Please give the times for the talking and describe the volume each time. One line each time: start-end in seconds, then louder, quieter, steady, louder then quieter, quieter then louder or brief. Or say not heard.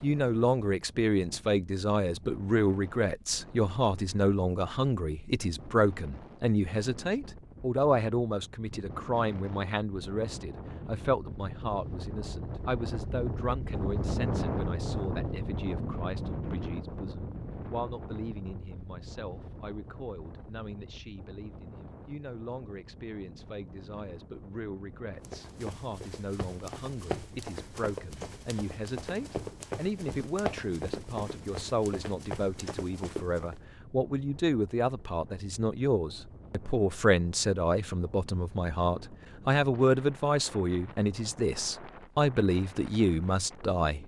0.0-44.0 quieter then louder.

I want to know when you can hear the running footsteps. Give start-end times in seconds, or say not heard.
25.2-33.6.